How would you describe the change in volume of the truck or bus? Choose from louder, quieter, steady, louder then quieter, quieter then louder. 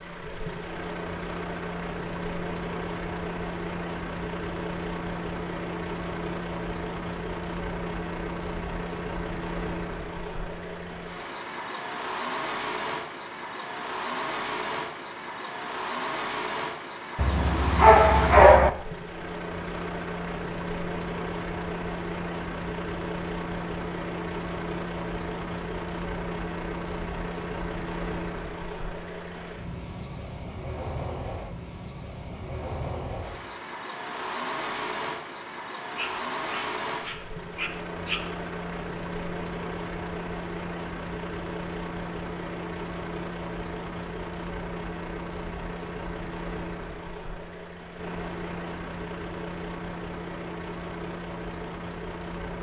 steady.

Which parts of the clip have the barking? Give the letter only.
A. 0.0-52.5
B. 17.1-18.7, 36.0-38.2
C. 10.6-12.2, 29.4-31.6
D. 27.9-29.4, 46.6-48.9
B.